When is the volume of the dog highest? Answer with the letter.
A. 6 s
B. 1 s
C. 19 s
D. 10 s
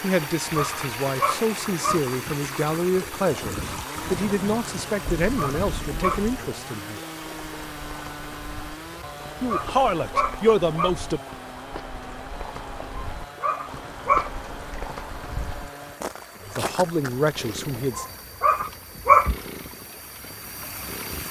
C.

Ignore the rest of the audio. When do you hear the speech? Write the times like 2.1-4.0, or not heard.
0.0-7.0, 9.4-11.2, 16.4-18.1.